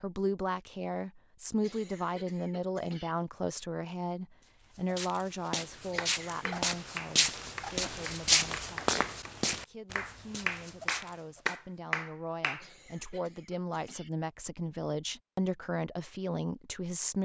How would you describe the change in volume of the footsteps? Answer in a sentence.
The volume of the footsteps goes up, then down.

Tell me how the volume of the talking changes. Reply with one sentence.
The volume of the talking goes down, then up.